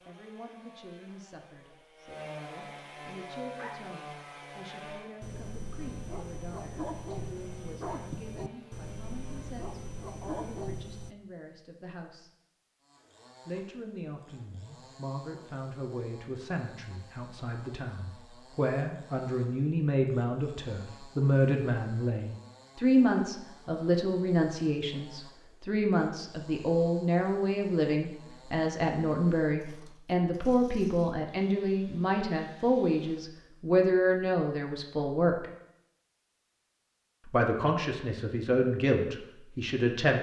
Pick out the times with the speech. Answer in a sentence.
The speech can be heard from 0.1 to 12.3 s, from 13.4 to 35.5 s and from 37.2 to 40.1 s.